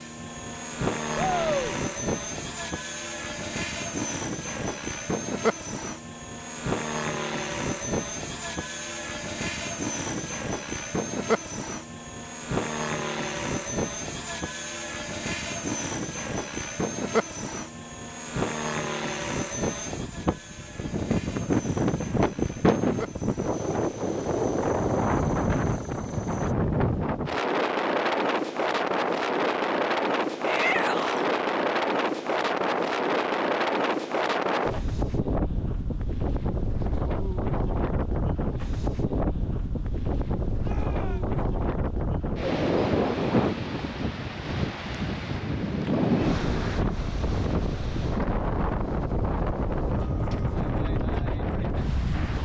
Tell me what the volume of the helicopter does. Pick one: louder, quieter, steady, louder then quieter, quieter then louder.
quieter.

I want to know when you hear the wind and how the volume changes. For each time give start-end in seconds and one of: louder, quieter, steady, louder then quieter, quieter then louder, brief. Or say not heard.
0.0-52.3 louder.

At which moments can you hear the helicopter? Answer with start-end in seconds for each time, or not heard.
0.0-26.6.